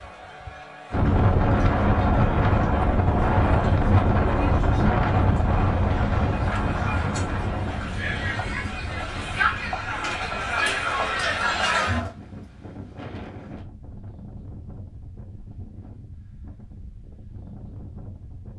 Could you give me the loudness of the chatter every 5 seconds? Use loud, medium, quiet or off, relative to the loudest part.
quiet, medium, loud, off.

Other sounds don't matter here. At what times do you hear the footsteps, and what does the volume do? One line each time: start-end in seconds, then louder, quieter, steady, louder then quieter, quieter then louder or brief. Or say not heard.
not heard.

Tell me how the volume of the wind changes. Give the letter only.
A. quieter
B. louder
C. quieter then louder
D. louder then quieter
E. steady
A.